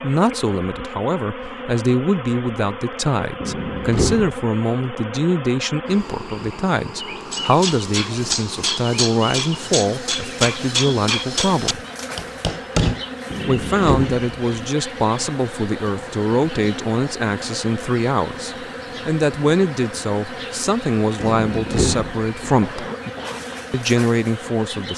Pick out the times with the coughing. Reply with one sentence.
You can hear the coughing from 22.6 to 23.4 s.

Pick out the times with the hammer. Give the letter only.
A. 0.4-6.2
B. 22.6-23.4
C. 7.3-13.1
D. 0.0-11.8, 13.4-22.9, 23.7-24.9
C.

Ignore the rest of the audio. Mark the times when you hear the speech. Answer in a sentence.
You can hear the speech from 0.0 to 11.8 s, from 13.4 to 22.9 s and from 23.7 to 24.9 s.